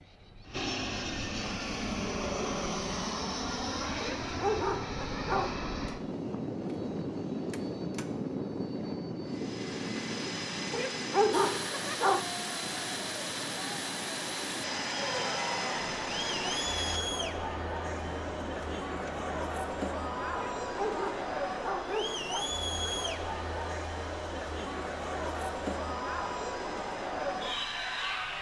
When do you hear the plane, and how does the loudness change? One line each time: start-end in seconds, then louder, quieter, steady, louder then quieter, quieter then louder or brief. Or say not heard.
0.0-28.3 quieter.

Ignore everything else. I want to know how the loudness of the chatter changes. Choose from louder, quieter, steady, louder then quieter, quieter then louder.
louder.